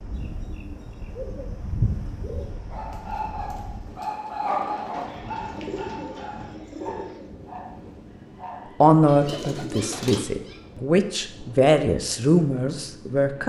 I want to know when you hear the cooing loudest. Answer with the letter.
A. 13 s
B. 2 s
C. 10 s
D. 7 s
B.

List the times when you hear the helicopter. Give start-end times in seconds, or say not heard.
not heard.